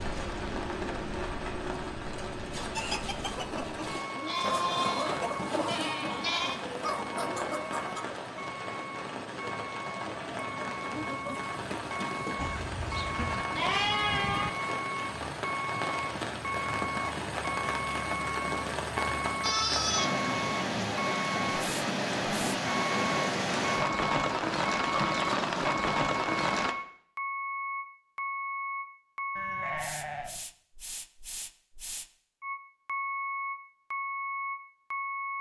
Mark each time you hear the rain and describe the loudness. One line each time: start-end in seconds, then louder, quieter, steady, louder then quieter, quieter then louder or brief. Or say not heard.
0.0-26.8 louder.